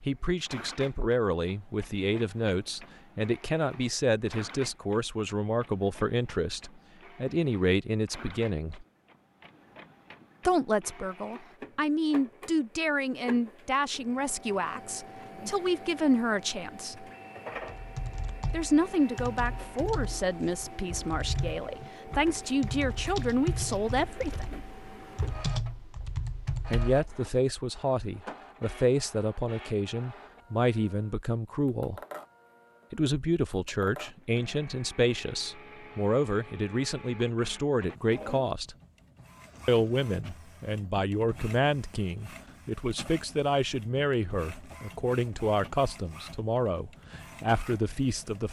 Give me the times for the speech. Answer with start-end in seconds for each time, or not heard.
0.0-8.8, 10.4-17.1, 18.5-24.6, 26.7-32.0, 32.9-38.8, 39.6-48.4.